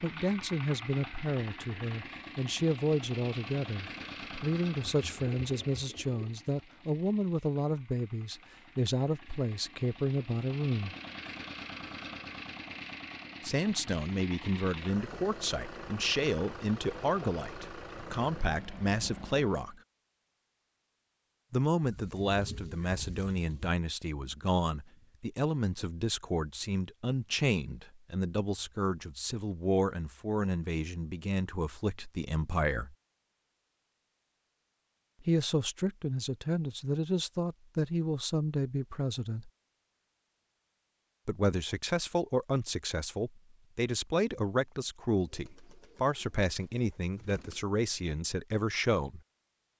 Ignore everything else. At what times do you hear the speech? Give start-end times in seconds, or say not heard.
0.0-10.9, 13.4-19.8, 21.5-33.0, 35.2-39.5, 41.2-49.2.